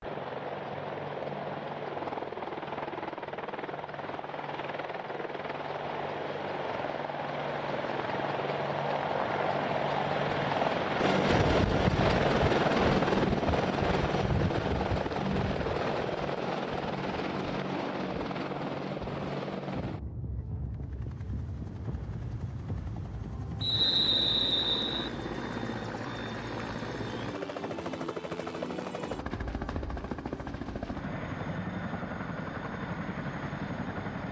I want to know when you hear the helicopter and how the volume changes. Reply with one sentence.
You can hear the helicopter from 0.0 to 34.2 s, getting louder then quieter.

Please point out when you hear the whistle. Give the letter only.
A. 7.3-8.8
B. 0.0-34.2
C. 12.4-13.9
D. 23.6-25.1
D.